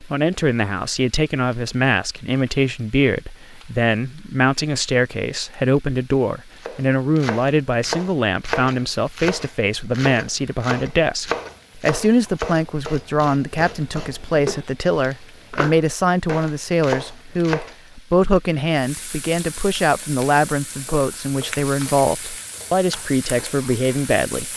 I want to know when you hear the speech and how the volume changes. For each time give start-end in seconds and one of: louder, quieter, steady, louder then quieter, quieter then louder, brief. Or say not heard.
0.0-24.5 steady.